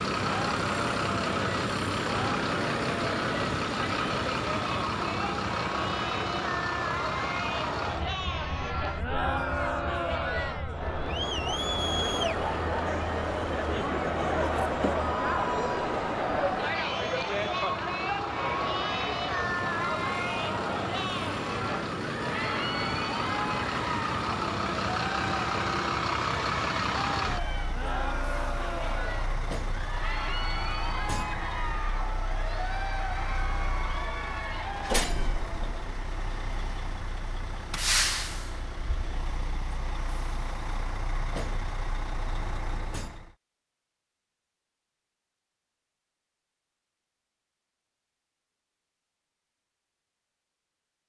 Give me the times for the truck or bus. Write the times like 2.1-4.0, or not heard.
0.0-43.4.